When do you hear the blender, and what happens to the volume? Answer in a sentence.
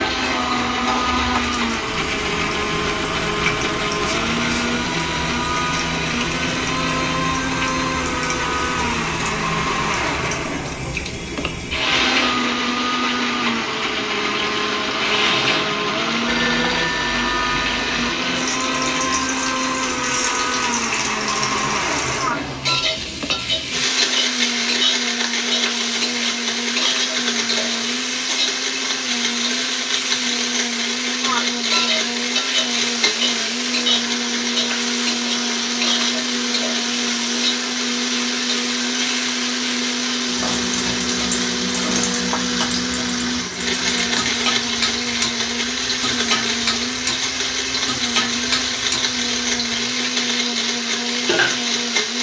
You can hear the blender from 0.0 to 52.1 s, at a steady volume.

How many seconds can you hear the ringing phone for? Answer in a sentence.
You can hear the ringing phone for 2 seconds altogether.